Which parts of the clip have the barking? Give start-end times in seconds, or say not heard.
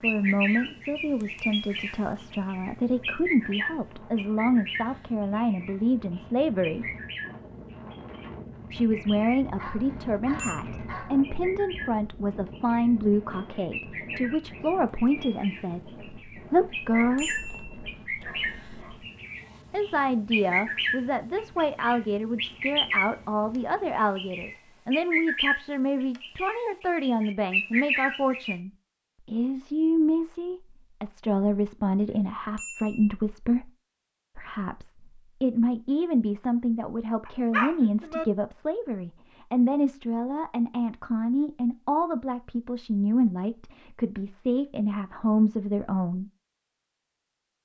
9.4-11.2, 17.1-19.1, 37.2-38.2.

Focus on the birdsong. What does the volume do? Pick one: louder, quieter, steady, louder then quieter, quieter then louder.
quieter then louder.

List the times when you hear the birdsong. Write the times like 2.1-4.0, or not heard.
0.0-9.4, 10.6-23.1, 23.9-28.6.